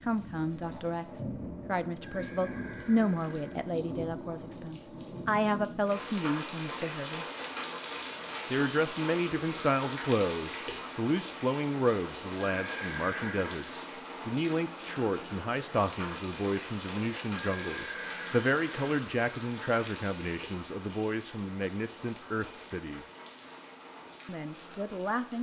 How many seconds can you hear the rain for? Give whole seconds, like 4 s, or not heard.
25 s.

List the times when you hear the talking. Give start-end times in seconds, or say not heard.
0.1-7.2, 8.5-23.1, 24.2-25.3.